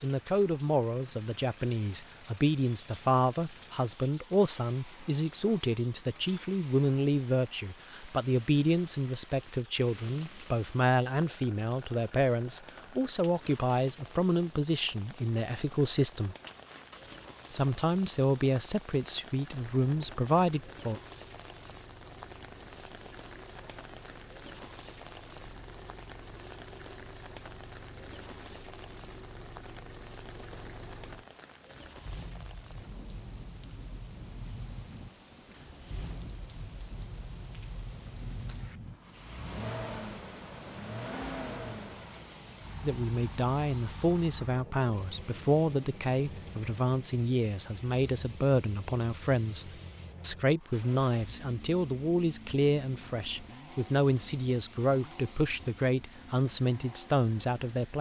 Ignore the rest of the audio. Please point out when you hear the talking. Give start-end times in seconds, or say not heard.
0.0-16.4, 17.5-21.0, 42.8-57.9.